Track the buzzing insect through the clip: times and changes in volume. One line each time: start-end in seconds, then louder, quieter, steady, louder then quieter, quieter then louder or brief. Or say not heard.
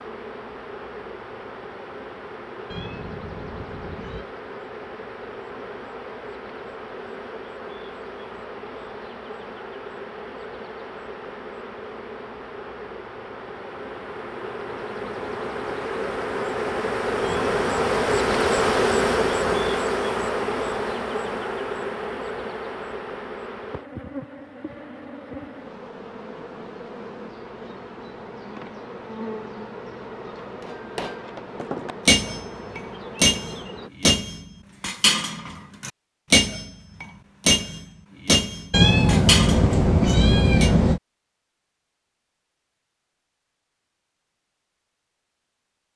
0.0-33.9 louder then quieter.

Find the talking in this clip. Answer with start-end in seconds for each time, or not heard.
not heard.